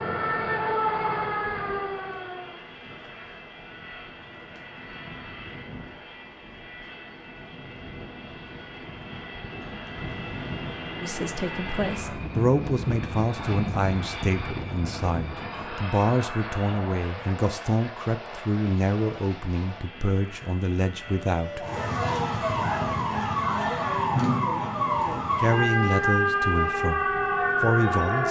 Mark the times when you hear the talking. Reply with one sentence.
The talking can be heard from 11.0 to 21.6 s and from 25.4 to 28.2 s.